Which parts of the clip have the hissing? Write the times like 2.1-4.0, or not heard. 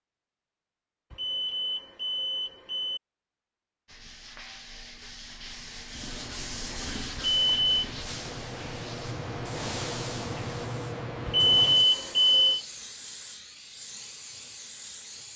5.9-15.3.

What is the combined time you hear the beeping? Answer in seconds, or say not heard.
4 s.